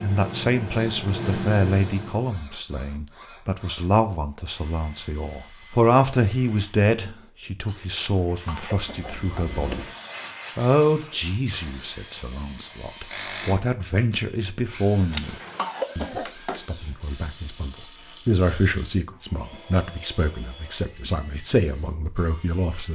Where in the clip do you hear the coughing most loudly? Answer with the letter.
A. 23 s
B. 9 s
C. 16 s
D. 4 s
C.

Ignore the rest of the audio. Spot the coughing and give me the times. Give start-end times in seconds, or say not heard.
8.0-9.4, 15.1-16.6.